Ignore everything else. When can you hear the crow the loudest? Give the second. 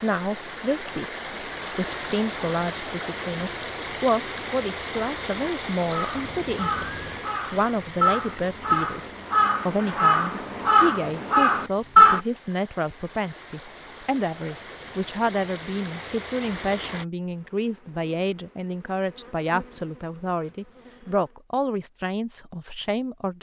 12 s.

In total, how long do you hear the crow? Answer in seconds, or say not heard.
6 s.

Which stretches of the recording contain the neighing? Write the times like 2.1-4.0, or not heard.
6.2-7.3.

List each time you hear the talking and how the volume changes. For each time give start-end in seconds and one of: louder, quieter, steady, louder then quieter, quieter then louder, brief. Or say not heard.
0.0-23.3 steady.